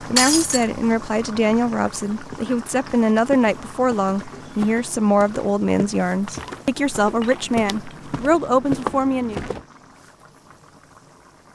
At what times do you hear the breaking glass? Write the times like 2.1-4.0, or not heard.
0.1-0.7, 6.2-8.1.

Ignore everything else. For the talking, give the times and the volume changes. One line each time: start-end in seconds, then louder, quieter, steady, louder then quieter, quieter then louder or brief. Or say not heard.
0.1-9.4 steady.